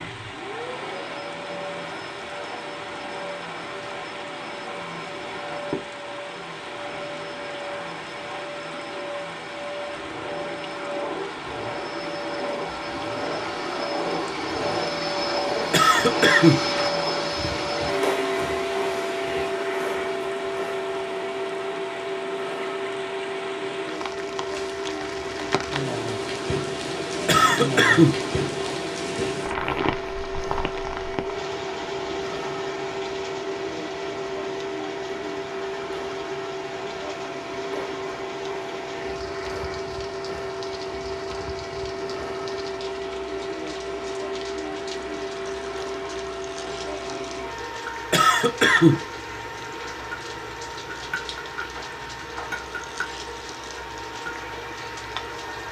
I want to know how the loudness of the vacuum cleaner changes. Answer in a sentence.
The volume of the vacuum cleaner goes up, then down.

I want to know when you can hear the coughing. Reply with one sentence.
The coughing can be heard from 15.7 to 16.6 s, from 27.2 to 28.1 s and from 48.1 to 49.0 s.